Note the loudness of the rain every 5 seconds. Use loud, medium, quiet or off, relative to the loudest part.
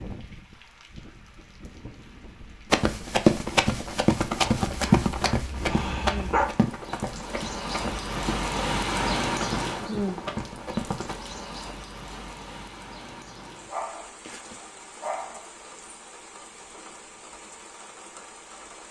quiet, loud, medium, quiet.